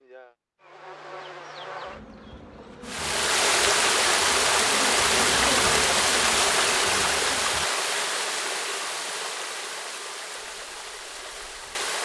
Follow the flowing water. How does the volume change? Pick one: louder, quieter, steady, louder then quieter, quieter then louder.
quieter.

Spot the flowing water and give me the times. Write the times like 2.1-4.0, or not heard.
2.9-11.9.